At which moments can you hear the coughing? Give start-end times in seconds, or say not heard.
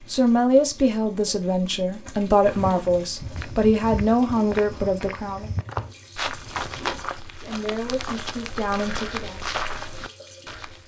not heard.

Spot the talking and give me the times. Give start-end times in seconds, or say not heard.
0.1-5.5, 7.5-9.5.